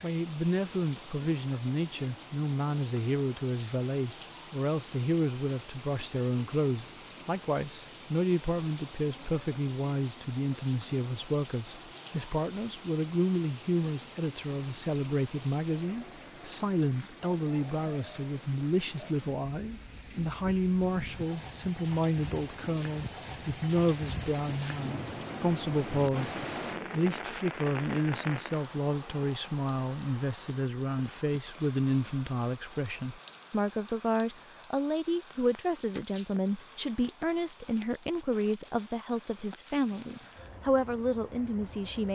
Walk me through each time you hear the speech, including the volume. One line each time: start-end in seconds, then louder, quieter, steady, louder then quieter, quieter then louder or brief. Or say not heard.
0.0-42.1 steady.